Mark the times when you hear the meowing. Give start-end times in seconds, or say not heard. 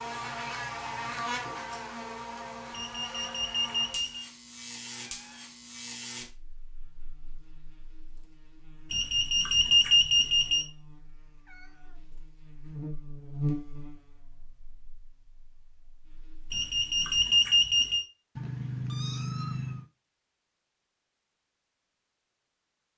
4.8-5.5, 11.2-12.1, 18.4-19.9.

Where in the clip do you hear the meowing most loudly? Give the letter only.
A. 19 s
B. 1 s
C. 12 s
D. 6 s
A.